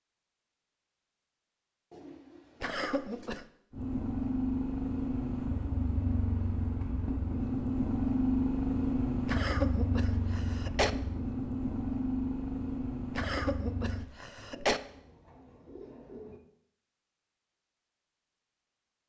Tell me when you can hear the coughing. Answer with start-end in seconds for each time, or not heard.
2.6-3.5, 9.2-10.9, 13.2-14.8.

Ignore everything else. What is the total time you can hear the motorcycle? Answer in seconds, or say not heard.
10 s.